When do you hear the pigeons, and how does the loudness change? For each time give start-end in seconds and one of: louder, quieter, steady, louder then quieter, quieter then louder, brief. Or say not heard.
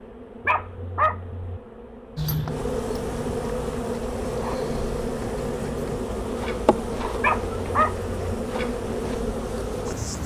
not heard.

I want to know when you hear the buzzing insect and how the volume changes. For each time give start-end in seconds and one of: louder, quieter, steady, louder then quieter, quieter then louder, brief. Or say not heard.
0.0-10.2 louder.